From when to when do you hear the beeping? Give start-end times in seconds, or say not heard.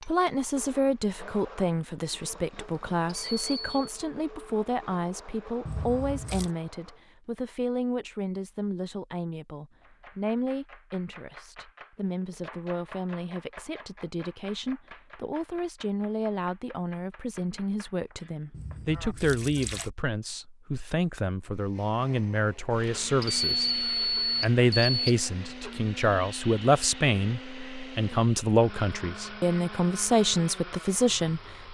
2.6-3.9, 22.7-25.1.